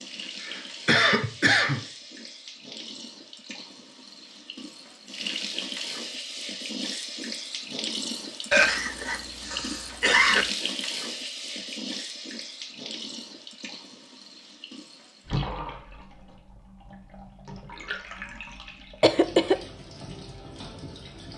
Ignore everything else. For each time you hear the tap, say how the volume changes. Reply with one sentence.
You can hear the tap from 0.0 to 21.3 s, getting louder then quieter.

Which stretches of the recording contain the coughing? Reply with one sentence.
You can hear the coughing from 0.4 to 1.8 s, from 8.5 to 10.4 s and from 19.0 to 19.6 s.